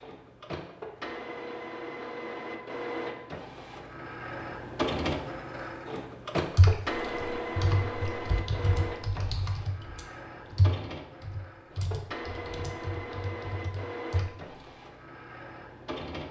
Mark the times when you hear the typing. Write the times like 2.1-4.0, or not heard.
6.5-14.6.